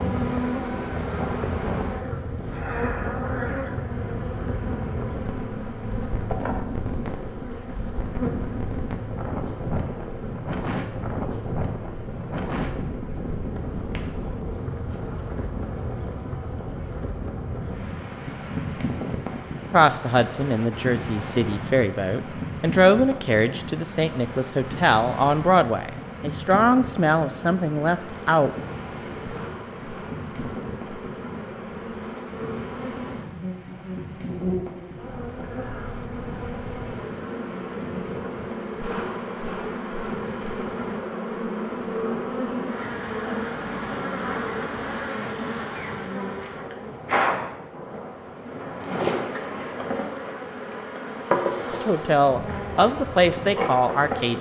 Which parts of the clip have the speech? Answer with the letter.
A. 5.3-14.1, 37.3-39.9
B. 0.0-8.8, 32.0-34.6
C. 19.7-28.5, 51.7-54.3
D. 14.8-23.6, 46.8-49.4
C.